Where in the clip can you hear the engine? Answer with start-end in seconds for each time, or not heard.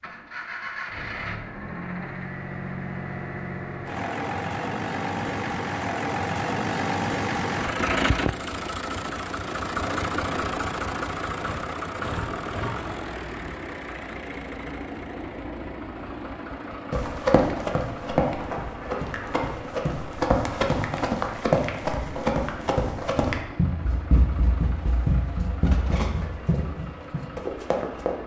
0.0-28.2.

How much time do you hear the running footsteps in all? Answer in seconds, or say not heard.
11 s.